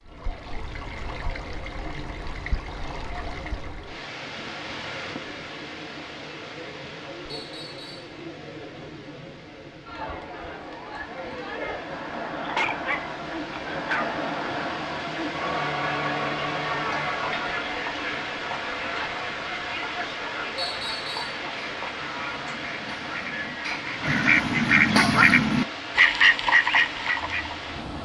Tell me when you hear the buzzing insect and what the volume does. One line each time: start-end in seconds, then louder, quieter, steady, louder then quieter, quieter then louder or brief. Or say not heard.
not heard.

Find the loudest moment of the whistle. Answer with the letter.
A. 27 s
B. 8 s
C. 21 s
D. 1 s
C.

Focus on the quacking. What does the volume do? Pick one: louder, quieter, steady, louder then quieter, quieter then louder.
louder.